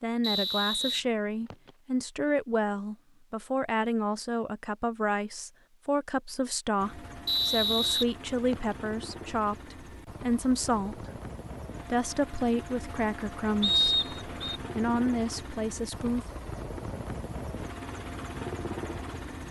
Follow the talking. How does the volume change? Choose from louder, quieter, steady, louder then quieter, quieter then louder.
steady.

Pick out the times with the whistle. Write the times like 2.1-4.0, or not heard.
0.2-1.7, 7.2-8.8, 13.6-14.6.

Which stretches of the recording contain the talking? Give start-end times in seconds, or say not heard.
0.0-11.1, 11.8-16.4.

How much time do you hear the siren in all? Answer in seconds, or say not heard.
not heard.